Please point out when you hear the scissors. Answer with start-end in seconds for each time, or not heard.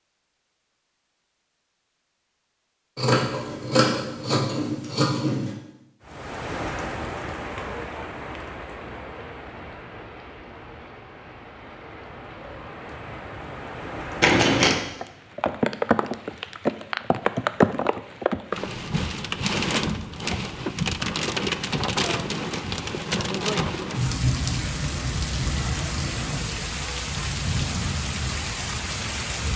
3.0-5.5, 14.2-14.8, 24.1-26.4.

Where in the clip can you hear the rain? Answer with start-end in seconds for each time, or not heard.
6.0-29.5.